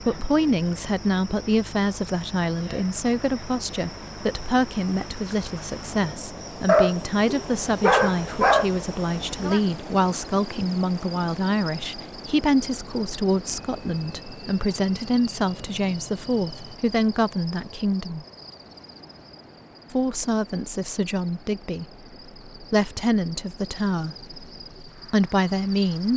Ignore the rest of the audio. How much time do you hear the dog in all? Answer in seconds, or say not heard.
2 s.